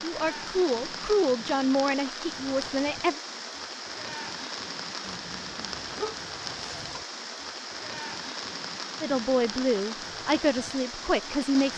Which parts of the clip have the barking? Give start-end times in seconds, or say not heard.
5.0-7.0.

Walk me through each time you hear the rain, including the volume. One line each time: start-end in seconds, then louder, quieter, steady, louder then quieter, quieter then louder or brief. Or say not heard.
0.0-11.7 steady.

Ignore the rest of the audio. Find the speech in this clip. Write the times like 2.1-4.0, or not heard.
0.0-3.2, 9.0-11.7.